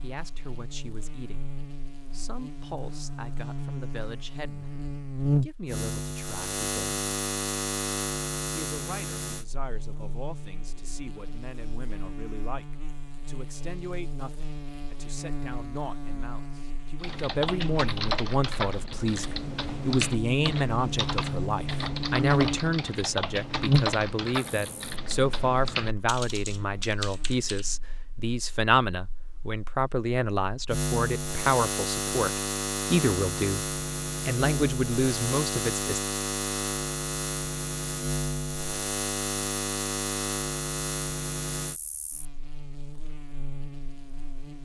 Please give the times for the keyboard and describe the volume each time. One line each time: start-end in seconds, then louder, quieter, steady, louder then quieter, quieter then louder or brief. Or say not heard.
17.0-27.6 steady.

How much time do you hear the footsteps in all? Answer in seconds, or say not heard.
not heard.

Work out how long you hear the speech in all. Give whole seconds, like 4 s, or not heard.
34 s.